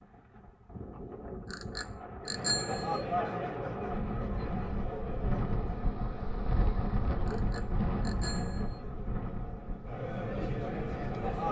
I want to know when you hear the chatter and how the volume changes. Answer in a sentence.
You can hear the chatter from 2.2 to 11.4 s, getting quieter then louder.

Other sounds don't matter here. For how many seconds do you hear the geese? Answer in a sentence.
You can't hear the geese here.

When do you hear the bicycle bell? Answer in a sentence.
The bicycle bell can be heard from 1.5 to 3.0 s and from 7.2 to 8.8 s.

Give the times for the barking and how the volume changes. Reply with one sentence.
The barking can't be heard in this clip.